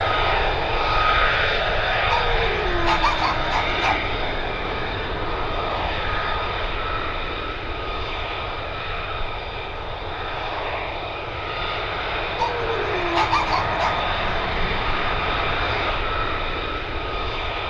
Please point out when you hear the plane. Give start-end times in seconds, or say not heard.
0.0-17.6.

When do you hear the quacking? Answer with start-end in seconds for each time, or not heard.
not heard.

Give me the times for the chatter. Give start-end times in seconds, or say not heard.
not heard.